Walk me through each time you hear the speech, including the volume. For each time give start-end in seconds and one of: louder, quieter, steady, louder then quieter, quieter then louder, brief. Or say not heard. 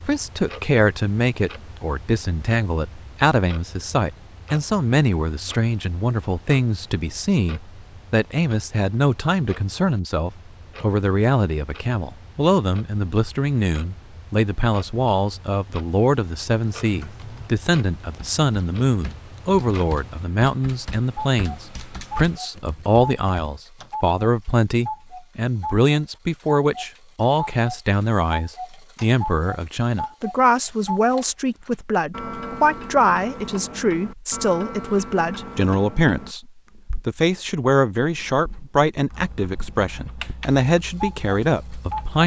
0.1-42.2 steady.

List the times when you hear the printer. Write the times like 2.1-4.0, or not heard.
not heard.